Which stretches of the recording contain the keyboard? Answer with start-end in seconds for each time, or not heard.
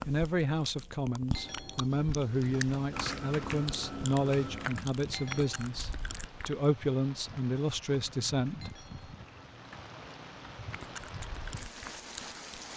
2.9-4.8, 7.8-10.6.